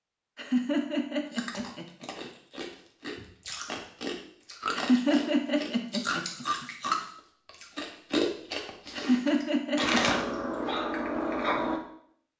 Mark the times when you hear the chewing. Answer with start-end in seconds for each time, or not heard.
1.2-11.8.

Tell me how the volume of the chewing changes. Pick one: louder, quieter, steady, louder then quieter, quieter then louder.
louder.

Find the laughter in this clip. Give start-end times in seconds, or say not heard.
0.3-2.3, 4.8-6.7, 8.9-10.0.